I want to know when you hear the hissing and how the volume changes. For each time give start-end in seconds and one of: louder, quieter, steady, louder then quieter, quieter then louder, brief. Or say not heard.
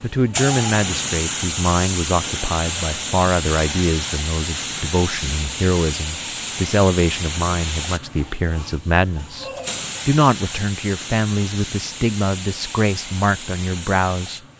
0.0-14.5 quieter.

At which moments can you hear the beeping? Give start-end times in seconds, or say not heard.
not heard.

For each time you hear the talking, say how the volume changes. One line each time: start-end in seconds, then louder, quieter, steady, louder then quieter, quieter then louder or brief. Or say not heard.
0.0-14.4 steady.